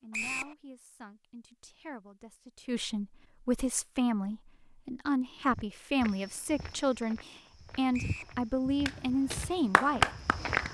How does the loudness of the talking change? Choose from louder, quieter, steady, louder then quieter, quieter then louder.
louder.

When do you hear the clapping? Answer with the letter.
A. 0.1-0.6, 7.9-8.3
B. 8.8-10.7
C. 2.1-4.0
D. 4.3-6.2
B.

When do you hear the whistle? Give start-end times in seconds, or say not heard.
0.1-0.6, 7.9-8.3.